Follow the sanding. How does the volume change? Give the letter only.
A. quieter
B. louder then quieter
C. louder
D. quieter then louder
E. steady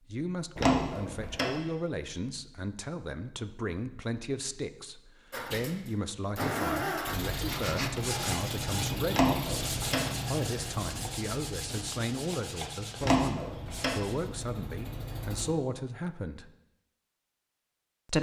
A.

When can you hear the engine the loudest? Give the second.
7 s.